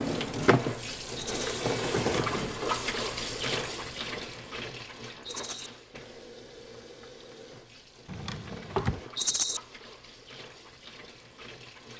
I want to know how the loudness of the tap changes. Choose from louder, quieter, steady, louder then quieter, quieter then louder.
quieter.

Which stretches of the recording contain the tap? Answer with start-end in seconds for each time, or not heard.
0.0-11.9.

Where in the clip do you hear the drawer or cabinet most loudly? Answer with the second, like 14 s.
9 s.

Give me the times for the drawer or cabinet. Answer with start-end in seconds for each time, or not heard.
1.9-2.6, 8.1-9.1.